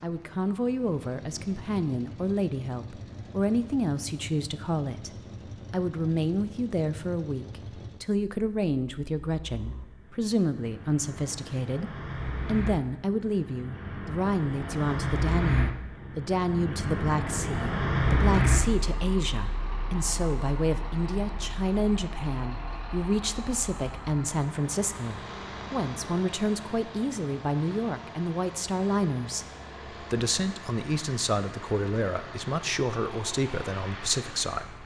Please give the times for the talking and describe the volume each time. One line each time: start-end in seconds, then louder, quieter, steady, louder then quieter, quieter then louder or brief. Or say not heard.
0.0-34.8 steady.